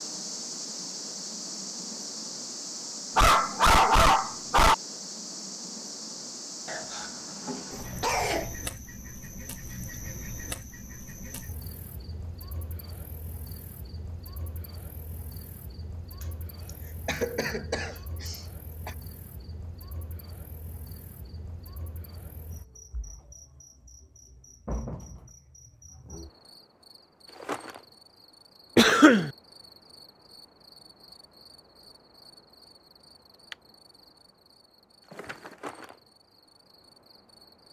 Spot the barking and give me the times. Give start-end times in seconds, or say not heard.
3.1-4.8.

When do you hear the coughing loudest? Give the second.
29 s.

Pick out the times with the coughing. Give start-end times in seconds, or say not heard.
6.7-8.6, 16.2-18.9, 28.8-29.3.